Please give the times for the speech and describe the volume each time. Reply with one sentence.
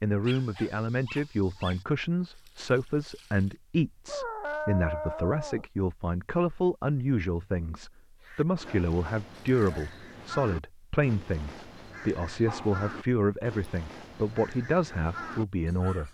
You can hear the speech from 0.0 to 16.0 s, at a steady volume.